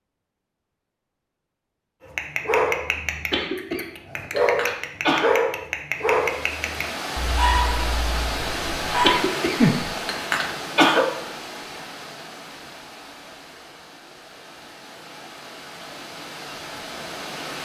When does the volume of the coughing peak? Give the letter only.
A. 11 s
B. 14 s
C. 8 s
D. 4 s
A.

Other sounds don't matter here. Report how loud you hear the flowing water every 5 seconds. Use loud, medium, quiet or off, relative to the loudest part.
off, loud, medium, medium.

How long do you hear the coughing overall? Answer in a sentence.
You can hear the coughing for 4 seconds altogether.